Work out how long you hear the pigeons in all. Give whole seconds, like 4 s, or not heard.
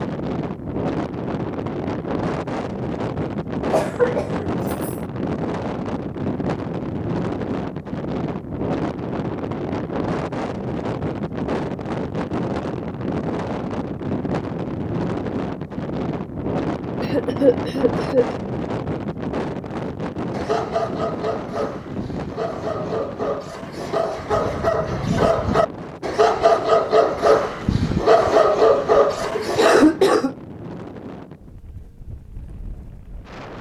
not heard.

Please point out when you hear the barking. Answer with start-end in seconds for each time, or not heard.
20.3-29.9.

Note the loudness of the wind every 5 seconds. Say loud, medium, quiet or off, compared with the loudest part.
loud, loud, loud, loud, medium, medium, quiet.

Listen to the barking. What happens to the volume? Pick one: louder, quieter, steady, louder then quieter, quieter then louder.
louder.